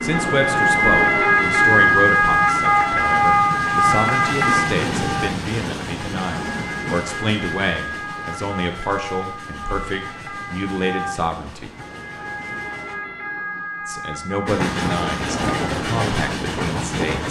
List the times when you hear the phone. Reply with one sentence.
The phone can't be heard in this clip.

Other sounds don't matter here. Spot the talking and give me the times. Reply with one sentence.
The talking can be heard from 0.0 to 11.7 s and from 13.8 to 17.2 s.